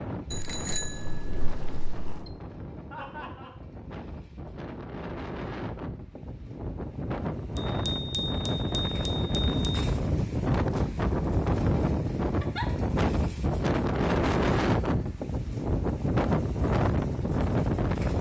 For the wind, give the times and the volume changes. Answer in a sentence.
You can hear the wind from 0.0 to 18.1 s, getting louder.